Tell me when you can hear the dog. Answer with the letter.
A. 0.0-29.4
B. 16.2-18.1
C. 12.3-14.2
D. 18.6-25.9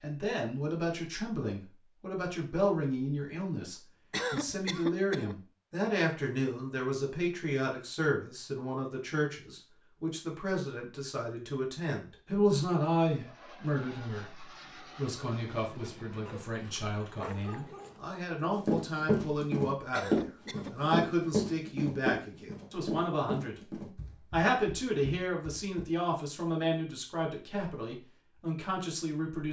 B.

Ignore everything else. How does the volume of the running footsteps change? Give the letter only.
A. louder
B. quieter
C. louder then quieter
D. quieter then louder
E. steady
B.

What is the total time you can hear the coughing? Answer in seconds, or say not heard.
2 s.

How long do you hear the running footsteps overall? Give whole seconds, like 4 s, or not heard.
7 s.